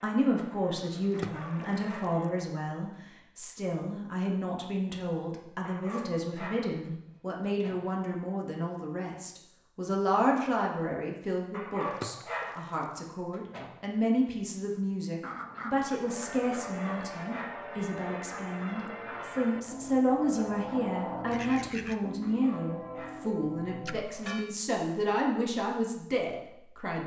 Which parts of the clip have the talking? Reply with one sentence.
The talking can be heard from 0.0 to 27.0 s.